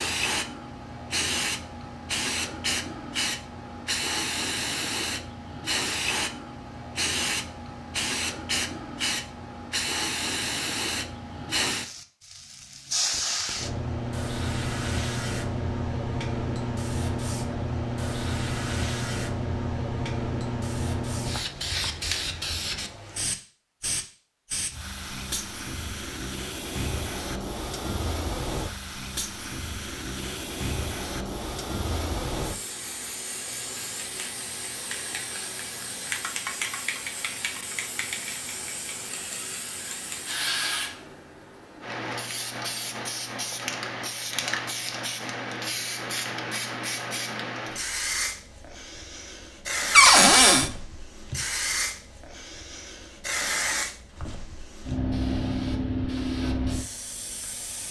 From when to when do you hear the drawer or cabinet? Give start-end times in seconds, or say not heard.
49.9-50.7.